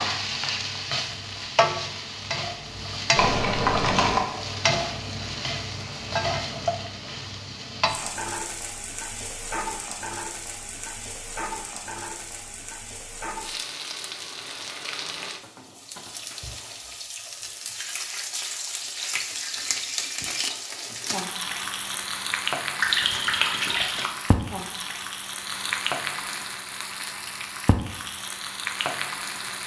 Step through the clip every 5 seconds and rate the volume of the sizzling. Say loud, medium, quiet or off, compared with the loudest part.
loud, loud, medium, medium, loud, loud.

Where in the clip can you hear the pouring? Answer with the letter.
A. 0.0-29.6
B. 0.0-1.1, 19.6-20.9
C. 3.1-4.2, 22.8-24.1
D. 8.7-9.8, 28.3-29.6
C.